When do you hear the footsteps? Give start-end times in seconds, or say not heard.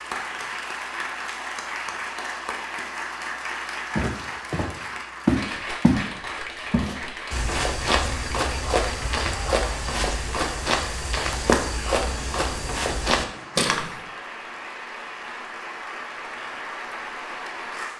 4.0-14.0.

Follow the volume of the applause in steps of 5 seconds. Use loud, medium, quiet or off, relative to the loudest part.
loud, loud, medium, loud.